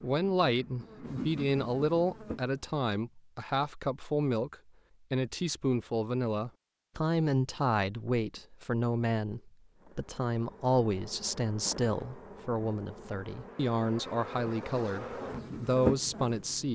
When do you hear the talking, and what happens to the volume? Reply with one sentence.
You can hear the talking from 0.0 to 16.6 s, at a steady volume.